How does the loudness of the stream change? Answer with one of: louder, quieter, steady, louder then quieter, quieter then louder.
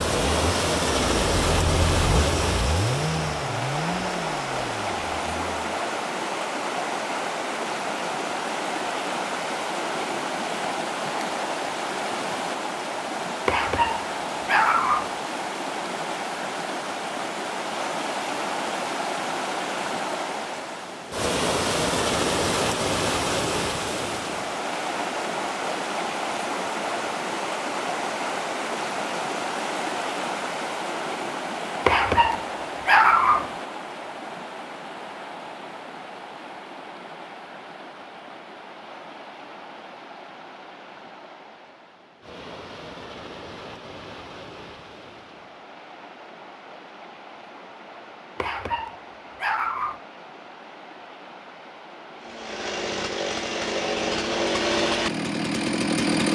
quieter.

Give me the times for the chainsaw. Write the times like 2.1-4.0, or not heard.
0.0-5.5, 52.2-56.2.